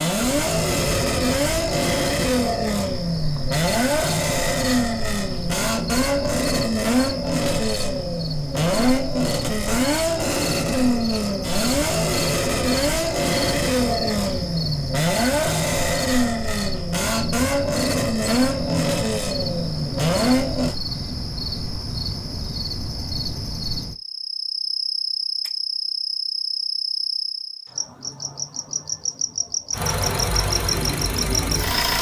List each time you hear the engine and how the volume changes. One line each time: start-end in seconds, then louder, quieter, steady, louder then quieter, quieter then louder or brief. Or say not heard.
0.0-20.8 steady
29.7-31.9 brief.